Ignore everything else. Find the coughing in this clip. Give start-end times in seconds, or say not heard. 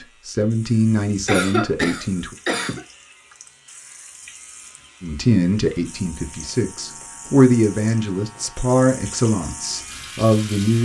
1.2-2.8.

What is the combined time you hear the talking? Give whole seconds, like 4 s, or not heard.
8 s.